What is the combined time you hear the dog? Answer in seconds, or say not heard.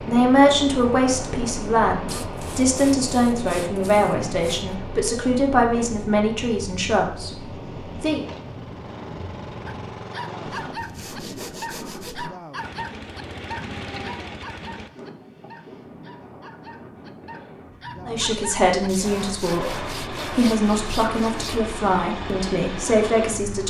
11 s.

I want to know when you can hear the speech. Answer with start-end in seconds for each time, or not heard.
0.0-8.2, 18.1-23.6.